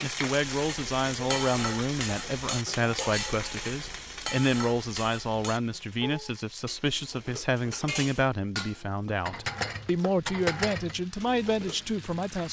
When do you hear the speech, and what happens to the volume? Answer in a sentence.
You can hear the speech from 0.0 to 12.4 s, at a steady volume.